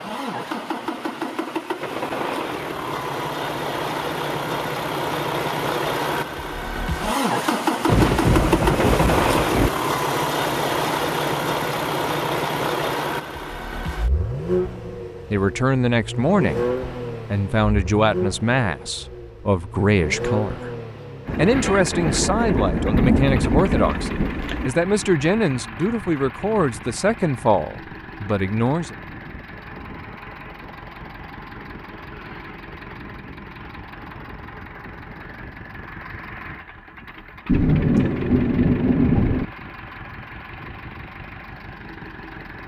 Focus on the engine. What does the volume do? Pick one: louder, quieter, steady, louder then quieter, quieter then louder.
quieter.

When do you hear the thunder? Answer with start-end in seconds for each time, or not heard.
7.8-9.7, 21.2-24.7, 37.5-39.5.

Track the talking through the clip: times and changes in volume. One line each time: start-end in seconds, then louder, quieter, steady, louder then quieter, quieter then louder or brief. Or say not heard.
15.3-20.7 quieter then louder
21.4-28.9 steady.